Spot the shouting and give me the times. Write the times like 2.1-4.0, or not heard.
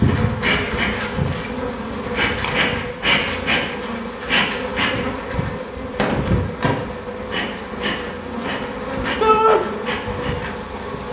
9.2-9.6.